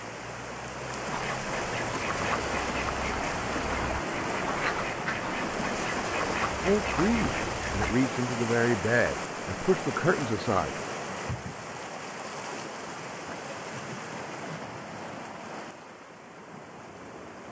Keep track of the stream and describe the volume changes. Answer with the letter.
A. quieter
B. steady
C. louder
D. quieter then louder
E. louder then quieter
A.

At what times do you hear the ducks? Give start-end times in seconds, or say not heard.
1.1-8.0.